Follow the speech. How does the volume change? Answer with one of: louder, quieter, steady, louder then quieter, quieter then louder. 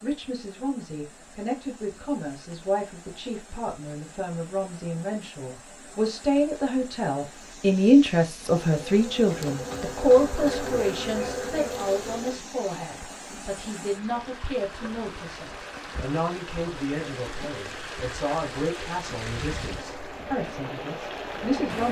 louder then quieter.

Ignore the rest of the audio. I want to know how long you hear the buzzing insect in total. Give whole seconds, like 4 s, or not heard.
4 s.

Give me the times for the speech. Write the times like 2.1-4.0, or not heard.
0.0-21.8.